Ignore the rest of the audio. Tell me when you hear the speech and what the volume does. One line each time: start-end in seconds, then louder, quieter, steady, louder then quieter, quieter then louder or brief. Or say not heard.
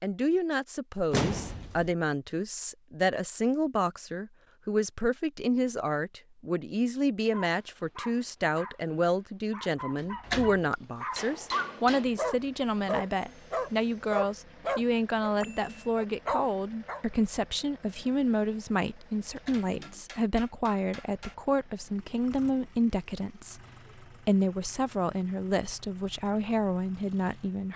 0.0-27.7 steady.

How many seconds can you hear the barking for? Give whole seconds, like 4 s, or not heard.
10 s.